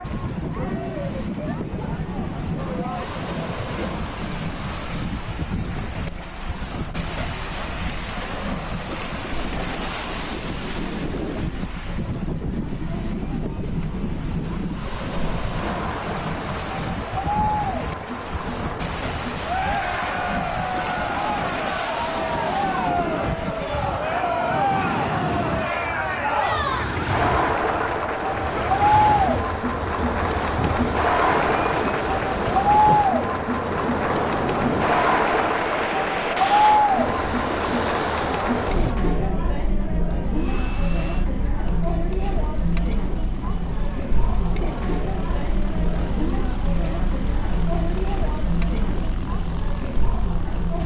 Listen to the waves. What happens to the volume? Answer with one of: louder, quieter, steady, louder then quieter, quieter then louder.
steady.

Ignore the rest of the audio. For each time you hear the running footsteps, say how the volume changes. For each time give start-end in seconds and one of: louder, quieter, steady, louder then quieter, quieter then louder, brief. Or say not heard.
not heard.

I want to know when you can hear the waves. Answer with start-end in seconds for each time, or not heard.
0.0-39.0.